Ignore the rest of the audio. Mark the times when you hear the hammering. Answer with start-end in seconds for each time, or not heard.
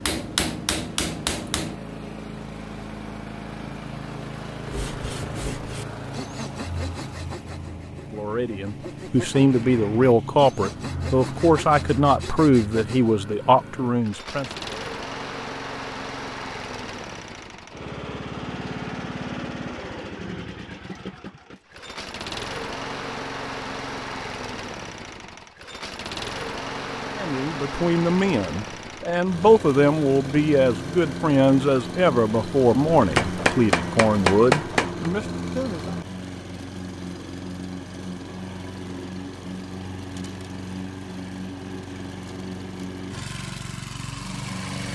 0.0-1.8, 33.0-35.1.